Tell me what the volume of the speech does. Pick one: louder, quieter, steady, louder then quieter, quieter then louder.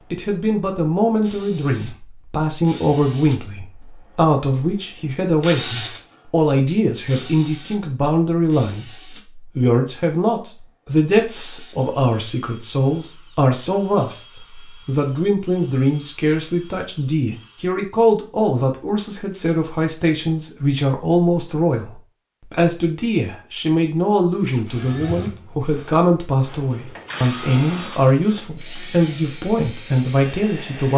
steady.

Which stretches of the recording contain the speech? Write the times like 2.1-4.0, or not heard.
0.1-30.9.